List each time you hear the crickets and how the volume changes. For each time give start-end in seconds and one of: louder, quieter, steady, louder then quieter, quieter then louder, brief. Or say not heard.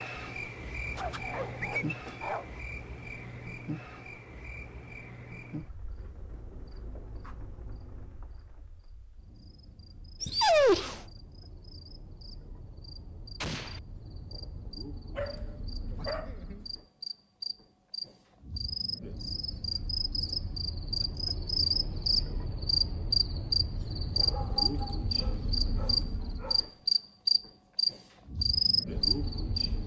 0.0-29.8 quieter then louder.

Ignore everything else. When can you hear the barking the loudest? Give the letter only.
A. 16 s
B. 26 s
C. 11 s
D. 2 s
C.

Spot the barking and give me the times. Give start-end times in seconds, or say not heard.
0.9-2.5, 10.2-11.1, 15.2-16.6, 24.2-26.8.